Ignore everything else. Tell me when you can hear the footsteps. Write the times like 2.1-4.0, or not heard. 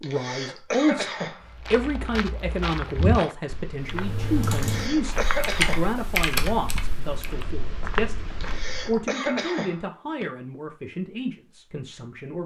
1.4-9.0.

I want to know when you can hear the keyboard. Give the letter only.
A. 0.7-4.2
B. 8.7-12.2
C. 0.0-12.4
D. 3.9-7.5
D.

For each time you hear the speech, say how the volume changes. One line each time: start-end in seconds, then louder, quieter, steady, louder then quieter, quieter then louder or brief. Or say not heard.
0.0-12.4 quieter.